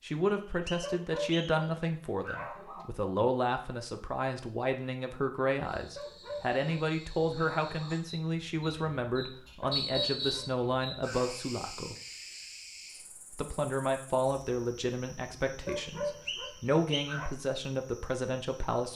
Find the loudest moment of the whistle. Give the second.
10 s.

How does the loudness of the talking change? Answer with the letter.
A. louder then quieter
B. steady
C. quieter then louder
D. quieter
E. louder
B.